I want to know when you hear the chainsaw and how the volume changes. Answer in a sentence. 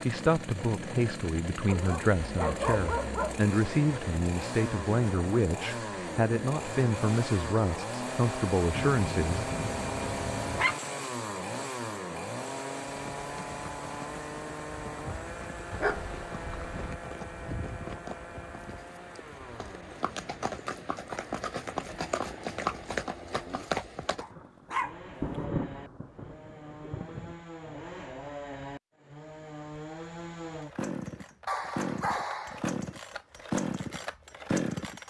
You can hear the chainsaw from 0.0 to 35.0 s, getting quieter then louder.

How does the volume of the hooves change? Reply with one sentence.
The loudness of the hooves goes up.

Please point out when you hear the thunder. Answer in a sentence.
The thunder can be heard from 24.3 to 27.4 s.